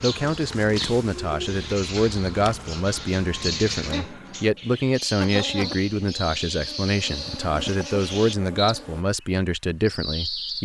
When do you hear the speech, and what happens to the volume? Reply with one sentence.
You can hear the speech from 0.0 to 10.6 s, at a steady volume.